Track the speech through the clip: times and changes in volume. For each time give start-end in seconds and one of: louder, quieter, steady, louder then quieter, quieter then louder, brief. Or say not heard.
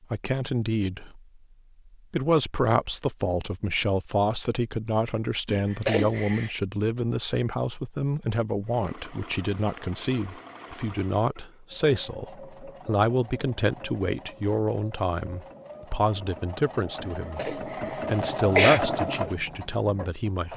0.1-1.2 brief
2.1-20.5 steady.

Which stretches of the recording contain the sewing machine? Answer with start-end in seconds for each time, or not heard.
8.6-20.5.